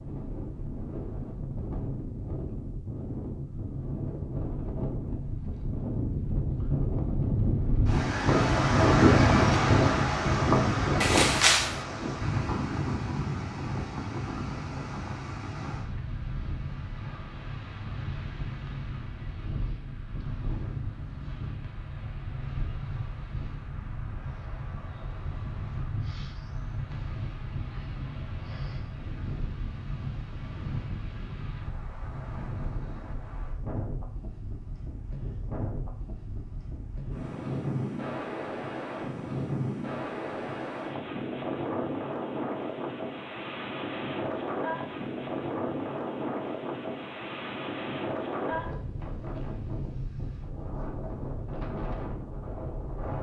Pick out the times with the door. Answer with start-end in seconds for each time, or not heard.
11.0-11.8.